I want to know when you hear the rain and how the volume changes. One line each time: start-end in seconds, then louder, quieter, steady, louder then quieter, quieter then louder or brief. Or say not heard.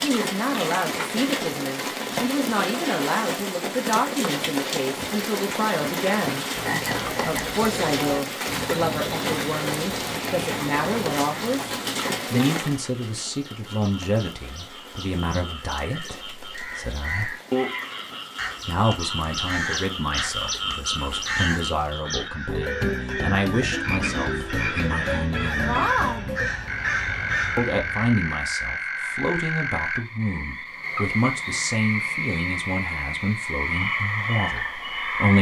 0.0-22.1 quieter.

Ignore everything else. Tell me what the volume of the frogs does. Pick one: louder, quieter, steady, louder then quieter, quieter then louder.
louder.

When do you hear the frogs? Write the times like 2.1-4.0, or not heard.
6.5-35.3.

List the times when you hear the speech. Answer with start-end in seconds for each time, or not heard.
0.0-6.5, 7.2-17.4, 18.6-25.8, 27.6-35.3.